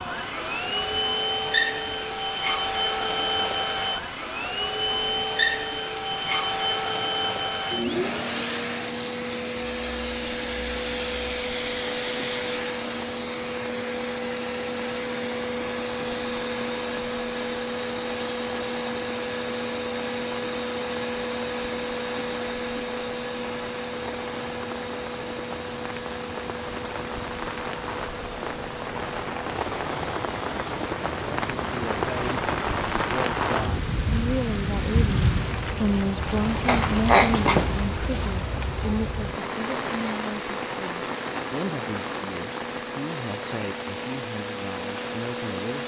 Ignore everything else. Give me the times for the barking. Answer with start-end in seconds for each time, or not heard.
36.6-38.3.